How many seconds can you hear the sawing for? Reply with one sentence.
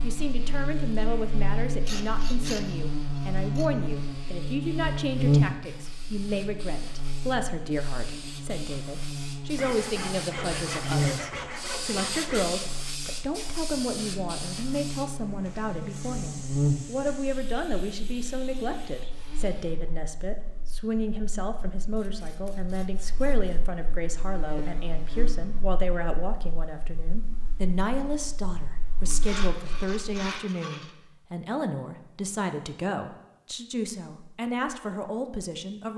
The sawing can be heard for 8 seconds in total.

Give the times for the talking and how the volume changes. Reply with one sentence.
The talking can be heard from 0.0 to 35.9 s, at a steady volume.